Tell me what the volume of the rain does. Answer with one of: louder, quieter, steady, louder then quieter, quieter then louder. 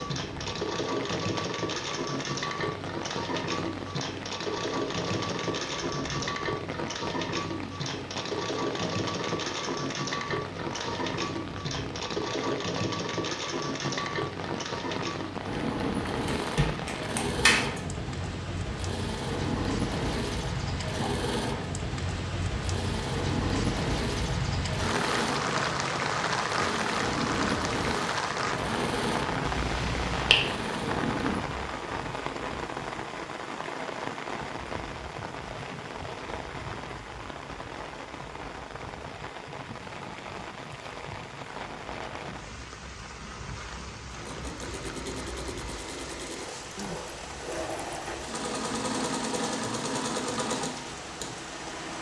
louder then quieter.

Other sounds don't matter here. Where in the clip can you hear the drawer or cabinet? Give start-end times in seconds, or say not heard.
not heard.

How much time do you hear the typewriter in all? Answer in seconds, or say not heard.
not heard.